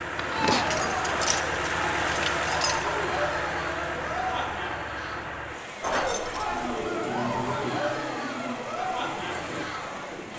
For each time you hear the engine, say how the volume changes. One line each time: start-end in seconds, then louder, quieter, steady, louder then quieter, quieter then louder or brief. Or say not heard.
0.0-10.3 quieter.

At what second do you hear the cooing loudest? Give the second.
7 s.